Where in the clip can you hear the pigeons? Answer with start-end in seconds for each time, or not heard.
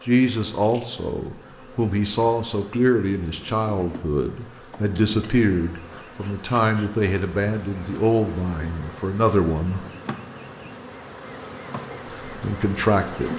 not heard.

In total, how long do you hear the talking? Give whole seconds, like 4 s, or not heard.
11 s.